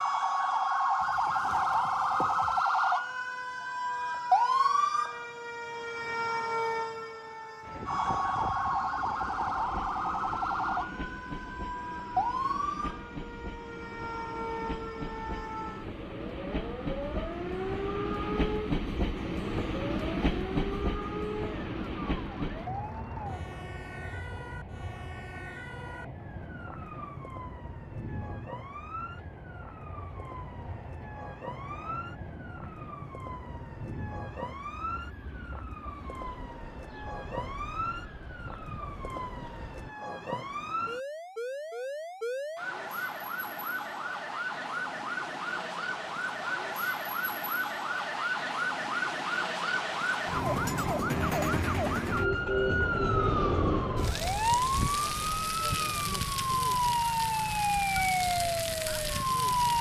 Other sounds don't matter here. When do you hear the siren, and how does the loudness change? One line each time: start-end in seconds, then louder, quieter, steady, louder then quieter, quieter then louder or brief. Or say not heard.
0.0-59.7 quieter then louder.